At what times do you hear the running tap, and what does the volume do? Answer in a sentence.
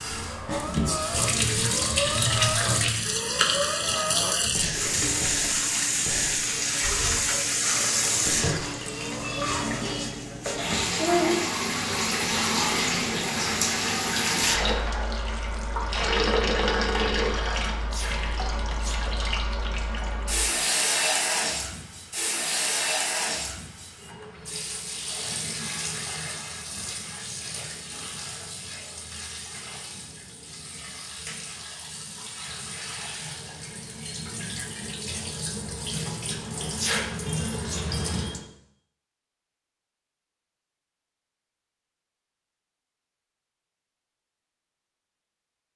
You can hear the running tap from 0.0 to 38.5 s, getting quieter.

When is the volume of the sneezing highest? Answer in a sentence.
The loudest moment of the sneezing is at 37 seconds.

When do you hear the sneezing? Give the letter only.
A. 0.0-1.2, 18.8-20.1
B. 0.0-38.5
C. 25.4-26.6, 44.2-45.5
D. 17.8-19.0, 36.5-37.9
D.